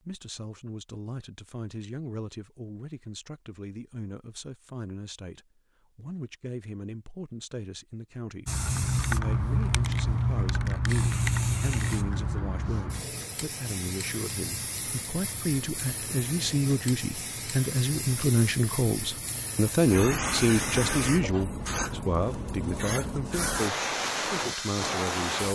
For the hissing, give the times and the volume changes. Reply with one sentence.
You can hear the hissing from 8.4 to 25.4 s, getting quieter then louder.